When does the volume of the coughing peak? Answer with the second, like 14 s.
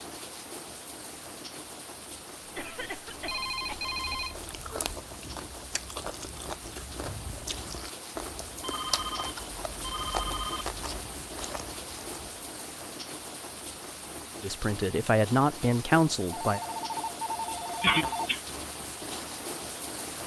18 s.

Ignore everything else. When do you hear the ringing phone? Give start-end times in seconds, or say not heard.
3.2-5.0, 8.6-10.7, 16.2-18.3.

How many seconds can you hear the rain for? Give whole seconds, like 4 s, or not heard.
20 s.